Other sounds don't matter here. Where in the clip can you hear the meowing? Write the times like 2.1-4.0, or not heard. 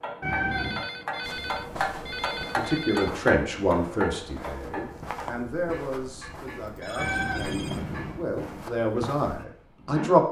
0.2-0.8, 7.0-8.2.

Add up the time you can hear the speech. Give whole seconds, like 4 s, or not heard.
8 s.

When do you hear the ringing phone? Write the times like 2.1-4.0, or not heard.
0.5-3.1, 6.6-7.8.